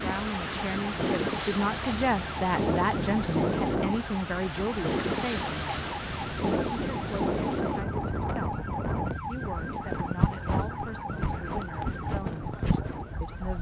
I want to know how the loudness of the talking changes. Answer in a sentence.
The volume of the talking goes down.